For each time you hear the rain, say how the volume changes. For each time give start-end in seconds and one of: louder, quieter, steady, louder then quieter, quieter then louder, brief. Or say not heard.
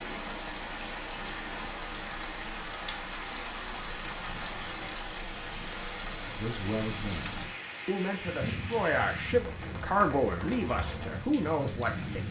0.0-12.2 steady.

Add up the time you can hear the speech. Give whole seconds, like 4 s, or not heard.
6 s.